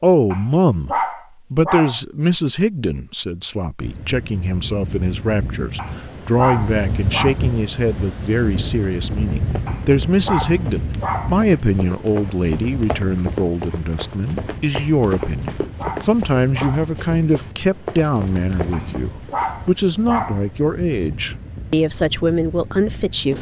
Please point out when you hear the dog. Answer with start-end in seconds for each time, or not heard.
0.3-2.0, 5.8-7.3, 9.7-11.3, 15.2-16.9, 18.7-20.4.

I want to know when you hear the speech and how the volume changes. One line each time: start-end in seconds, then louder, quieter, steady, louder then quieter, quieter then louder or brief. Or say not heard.
0.0-23.3 steady.